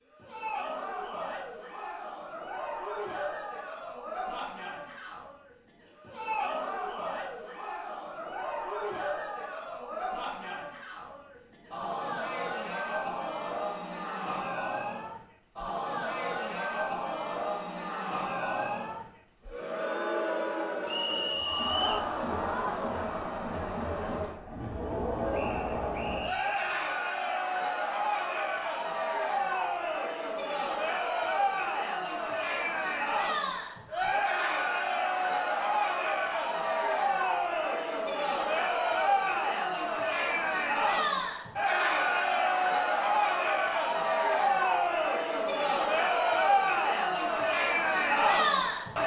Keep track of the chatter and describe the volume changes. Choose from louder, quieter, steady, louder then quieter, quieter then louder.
louder.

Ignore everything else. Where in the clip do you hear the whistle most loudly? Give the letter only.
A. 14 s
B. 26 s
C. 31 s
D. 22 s
D.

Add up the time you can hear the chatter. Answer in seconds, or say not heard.
49 s.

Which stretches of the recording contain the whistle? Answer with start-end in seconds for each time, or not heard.
20.9-22.1, 25.3-27.0.